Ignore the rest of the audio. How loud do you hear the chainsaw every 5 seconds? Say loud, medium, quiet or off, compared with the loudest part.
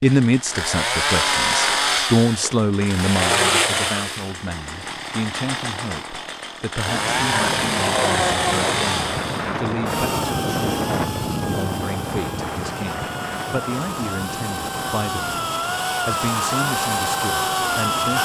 loud, loud, medium, loud.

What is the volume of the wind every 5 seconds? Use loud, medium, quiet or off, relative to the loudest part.
off, loud, loud, medium.